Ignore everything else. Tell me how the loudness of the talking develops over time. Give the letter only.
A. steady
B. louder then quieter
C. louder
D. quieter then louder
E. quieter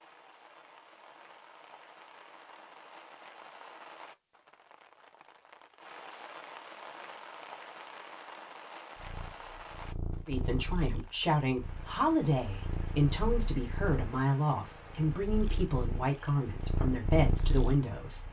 A.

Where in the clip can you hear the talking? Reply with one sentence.
The talking can be heard from 10.2 to 18.2 s.